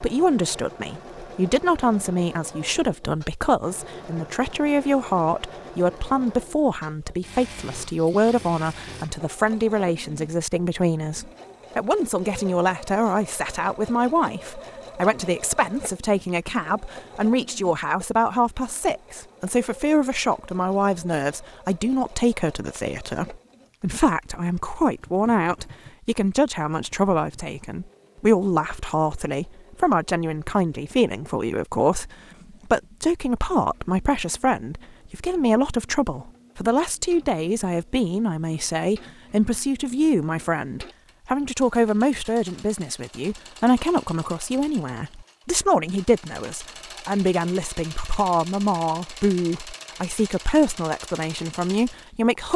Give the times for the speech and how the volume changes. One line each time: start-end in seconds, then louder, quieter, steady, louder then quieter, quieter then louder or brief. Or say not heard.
0.0-52.5 steady.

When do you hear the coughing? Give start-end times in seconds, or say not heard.
not heard.